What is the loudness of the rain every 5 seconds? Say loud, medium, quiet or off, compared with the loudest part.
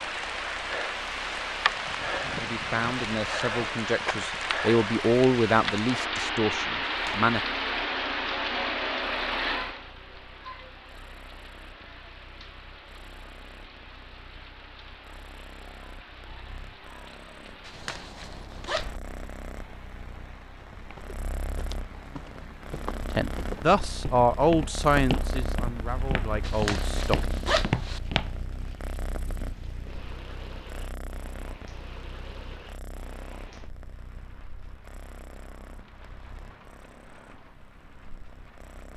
loud, loud, quiet, quiet, quiet, quiet, quiet, quiet.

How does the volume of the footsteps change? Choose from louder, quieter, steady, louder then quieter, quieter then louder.
louder.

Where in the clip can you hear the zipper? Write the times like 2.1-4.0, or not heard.
6.8-7.3, 17.6-18.9, 26.4-28.0.